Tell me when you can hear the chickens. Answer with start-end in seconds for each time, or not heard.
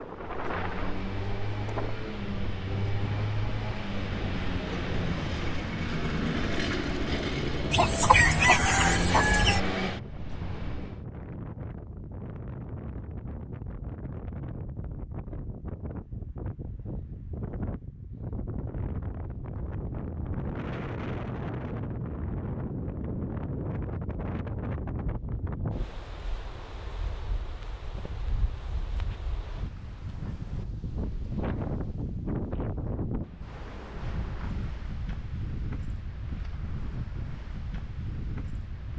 7.7-9.6.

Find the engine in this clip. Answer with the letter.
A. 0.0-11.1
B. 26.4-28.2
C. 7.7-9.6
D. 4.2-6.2
A.